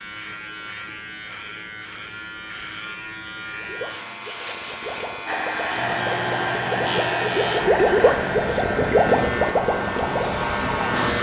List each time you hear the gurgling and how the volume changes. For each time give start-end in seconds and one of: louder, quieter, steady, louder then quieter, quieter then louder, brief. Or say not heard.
3.5-10.4 louder.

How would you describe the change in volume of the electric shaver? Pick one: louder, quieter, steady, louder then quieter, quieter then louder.
louder.